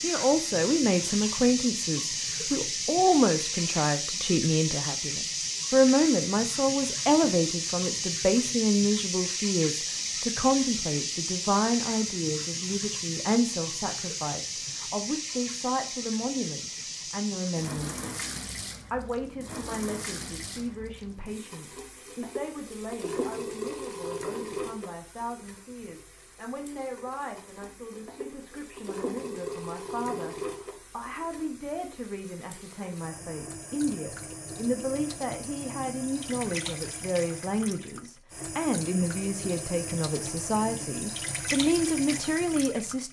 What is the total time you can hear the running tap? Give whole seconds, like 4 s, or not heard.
43 s.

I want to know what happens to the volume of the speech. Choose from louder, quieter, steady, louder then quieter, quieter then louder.
quieter then louder.